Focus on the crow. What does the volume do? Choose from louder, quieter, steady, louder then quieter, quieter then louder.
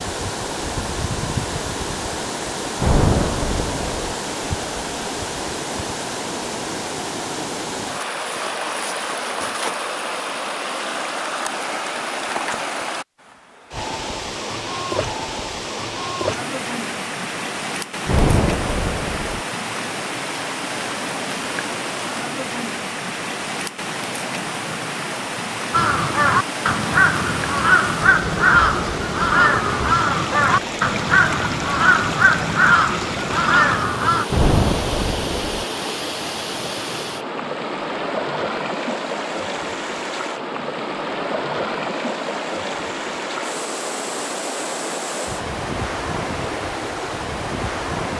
steady.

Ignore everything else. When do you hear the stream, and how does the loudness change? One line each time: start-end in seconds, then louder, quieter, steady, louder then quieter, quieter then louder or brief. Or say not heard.
0.0-48.1 steady.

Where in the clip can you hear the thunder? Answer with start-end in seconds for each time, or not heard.
2.8-4.2, 18.1-19.4, 34.3-35.6.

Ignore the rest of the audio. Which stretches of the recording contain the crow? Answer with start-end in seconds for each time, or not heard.
25.7-34.2.